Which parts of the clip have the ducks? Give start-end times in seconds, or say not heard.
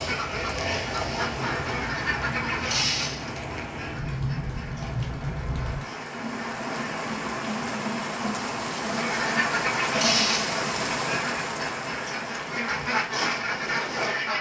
0.0-7.0, 8.8-14.3.